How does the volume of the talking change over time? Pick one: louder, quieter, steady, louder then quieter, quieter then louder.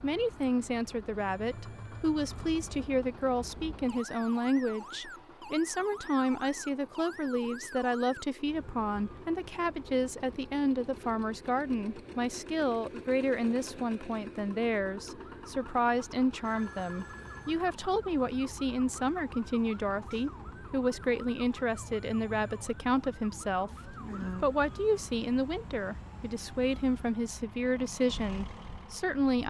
steady.